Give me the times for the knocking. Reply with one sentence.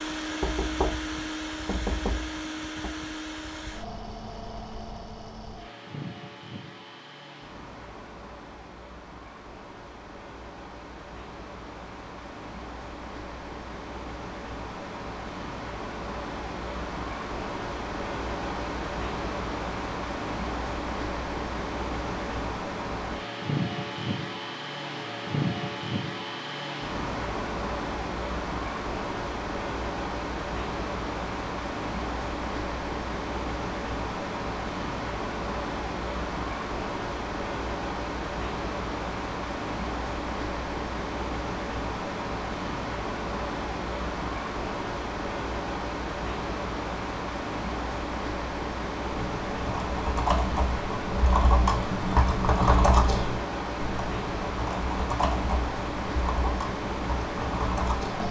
The knocking can be heard from 0.4 to 3.0 s.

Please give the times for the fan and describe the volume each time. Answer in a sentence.
You can hear the fan from 0.0 to 58.2 s, getting louder.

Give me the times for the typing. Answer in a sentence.
The typing can be heard from 49.1 to 58.2 s.